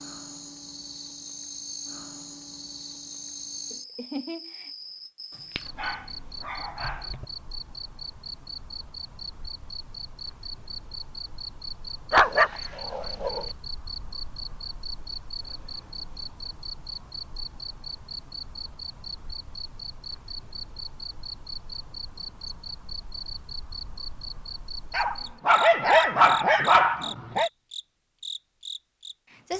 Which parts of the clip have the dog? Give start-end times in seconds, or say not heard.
5.5-7.2, 12.1-13.4, 24.9-27.5.